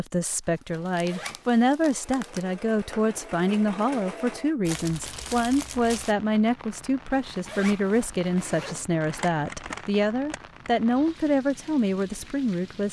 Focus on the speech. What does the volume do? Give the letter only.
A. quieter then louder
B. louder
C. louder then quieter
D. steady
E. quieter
D.